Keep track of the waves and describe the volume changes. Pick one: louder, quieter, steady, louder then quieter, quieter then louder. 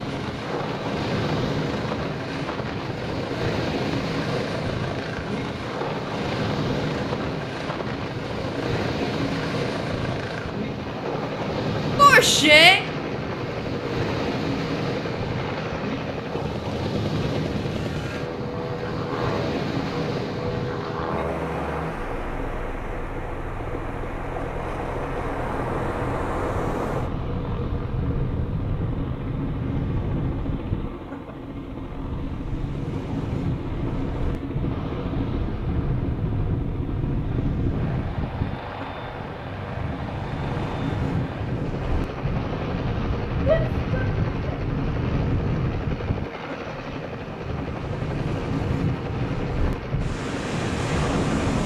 steady.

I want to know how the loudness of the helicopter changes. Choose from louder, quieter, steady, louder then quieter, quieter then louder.
steady.